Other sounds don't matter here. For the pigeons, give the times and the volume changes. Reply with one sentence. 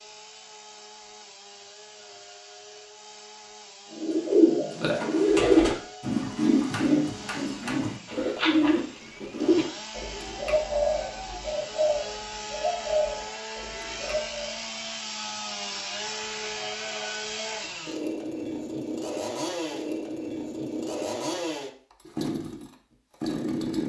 You can hear the pigeons from 4.0 to 14.6 s, getting quieter.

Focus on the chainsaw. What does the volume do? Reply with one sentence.
The volume of the chainsaw goes up.